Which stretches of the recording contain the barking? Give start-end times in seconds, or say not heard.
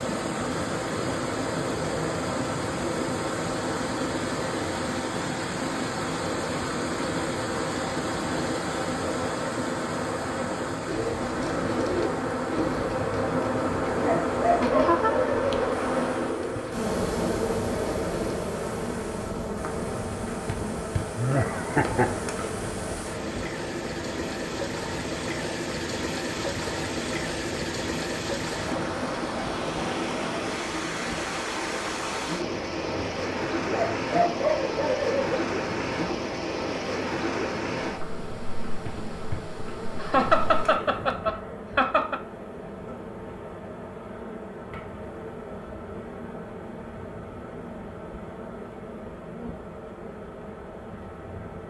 14.0-15.6, 33.7-35.4.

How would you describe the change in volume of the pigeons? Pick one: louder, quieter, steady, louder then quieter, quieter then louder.
quieter.